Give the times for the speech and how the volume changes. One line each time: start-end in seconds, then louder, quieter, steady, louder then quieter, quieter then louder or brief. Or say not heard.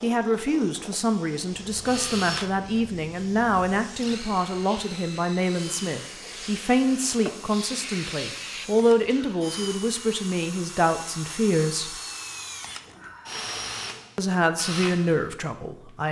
0.0-11.9 steady
14.2-16.0 brief.